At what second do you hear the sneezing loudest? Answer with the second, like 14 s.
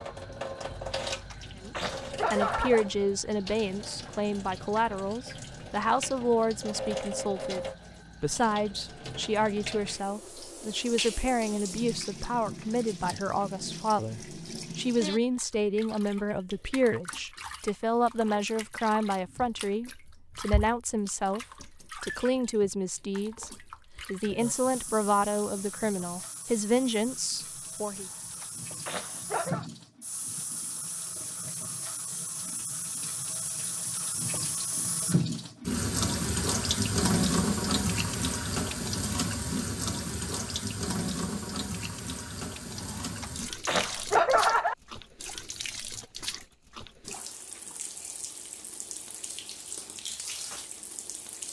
44 s.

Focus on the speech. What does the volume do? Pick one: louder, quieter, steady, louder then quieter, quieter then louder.
steady.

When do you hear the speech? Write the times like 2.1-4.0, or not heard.
1.6-28.1.